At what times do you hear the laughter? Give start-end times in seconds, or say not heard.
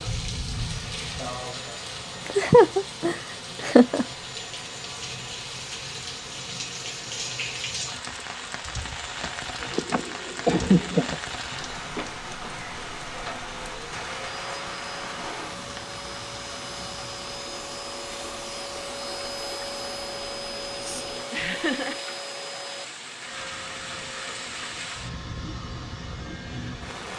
2.2-4.0, 9.6-11.9, 21.3-22.0.